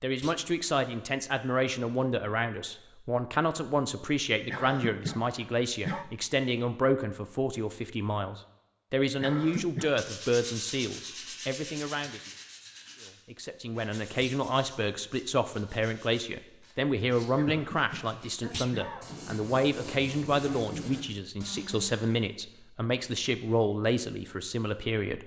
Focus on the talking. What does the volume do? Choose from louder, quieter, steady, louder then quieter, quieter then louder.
steady.